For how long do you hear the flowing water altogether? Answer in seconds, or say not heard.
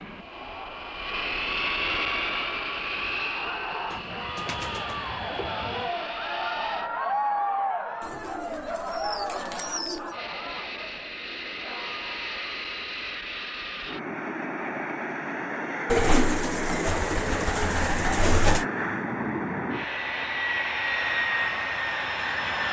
not heard.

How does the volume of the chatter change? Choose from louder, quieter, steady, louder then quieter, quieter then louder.
louder then quieter.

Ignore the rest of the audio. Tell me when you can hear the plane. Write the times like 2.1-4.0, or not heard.
0.0-6.9, 10.1-22.6.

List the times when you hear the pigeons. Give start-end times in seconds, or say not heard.
3.9-5.9, 8.0-10.2, 15.8-18.6.